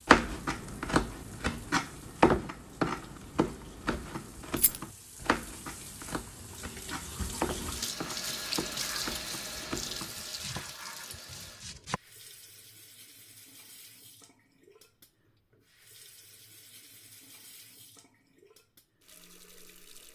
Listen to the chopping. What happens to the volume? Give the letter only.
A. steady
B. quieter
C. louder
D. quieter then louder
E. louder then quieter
B.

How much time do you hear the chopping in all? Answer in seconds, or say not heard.
12 s.